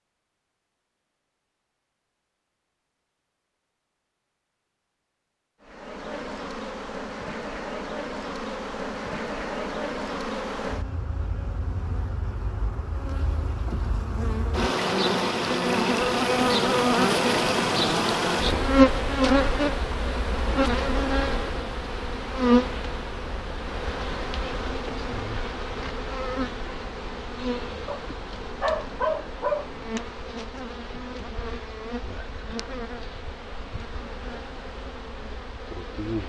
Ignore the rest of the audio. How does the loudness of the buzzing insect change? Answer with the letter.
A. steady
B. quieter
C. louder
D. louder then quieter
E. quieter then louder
D.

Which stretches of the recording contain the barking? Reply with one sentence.
The barking can be heard from 27.9 to 29.9 s.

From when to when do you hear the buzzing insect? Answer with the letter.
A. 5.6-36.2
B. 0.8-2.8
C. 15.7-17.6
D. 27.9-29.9
A.